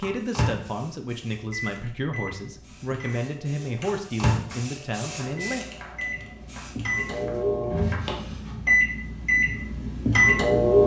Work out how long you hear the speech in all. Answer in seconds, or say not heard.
6 s.